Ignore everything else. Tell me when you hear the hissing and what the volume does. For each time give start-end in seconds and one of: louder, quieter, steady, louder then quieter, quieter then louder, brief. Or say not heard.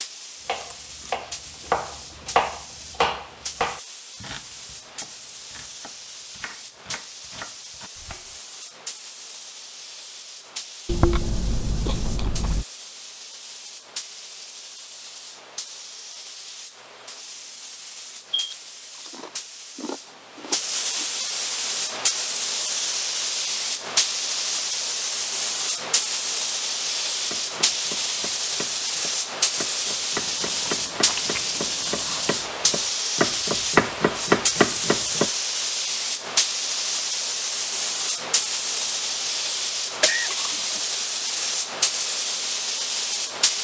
0.0-43.5 louder.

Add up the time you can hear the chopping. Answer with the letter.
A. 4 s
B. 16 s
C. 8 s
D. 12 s
B.